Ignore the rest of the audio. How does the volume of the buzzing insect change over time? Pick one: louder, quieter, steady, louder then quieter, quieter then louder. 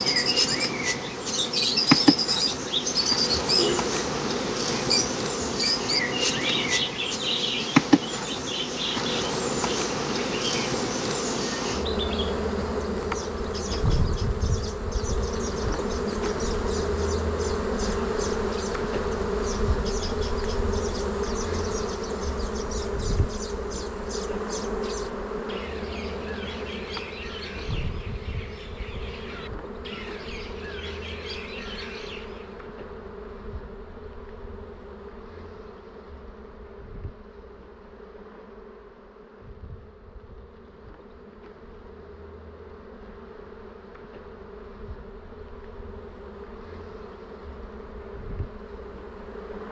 quieter.